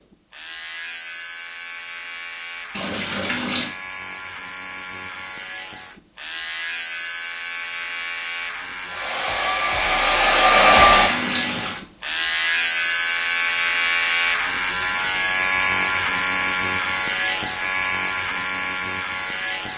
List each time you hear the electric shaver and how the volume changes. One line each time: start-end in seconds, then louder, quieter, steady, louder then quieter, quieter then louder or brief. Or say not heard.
0.1-19.7 louder.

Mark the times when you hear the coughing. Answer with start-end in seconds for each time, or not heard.
not heard.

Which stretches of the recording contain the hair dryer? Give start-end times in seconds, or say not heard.
8.8-11.2.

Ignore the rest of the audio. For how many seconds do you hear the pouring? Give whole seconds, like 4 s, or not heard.
2 s.